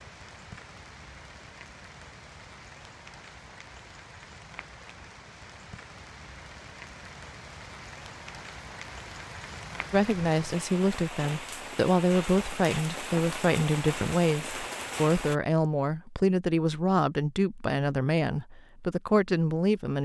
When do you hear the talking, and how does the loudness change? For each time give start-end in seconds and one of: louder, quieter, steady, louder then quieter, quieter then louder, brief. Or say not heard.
9.9-20.0 steady.